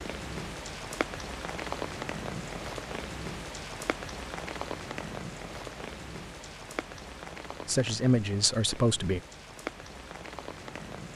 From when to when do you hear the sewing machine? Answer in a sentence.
You can't hear the sewing machine here.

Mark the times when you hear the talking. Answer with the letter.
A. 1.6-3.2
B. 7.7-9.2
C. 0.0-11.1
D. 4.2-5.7
B.